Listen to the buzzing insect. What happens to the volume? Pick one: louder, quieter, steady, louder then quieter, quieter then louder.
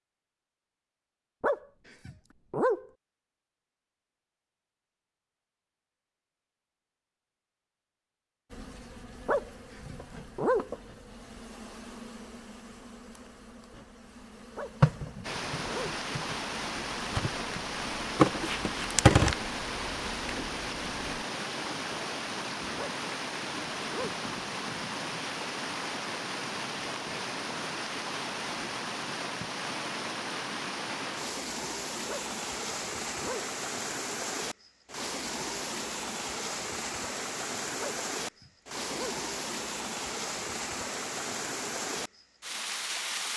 louder.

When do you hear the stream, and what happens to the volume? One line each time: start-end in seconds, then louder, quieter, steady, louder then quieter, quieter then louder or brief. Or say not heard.
15.2-43.3 steady.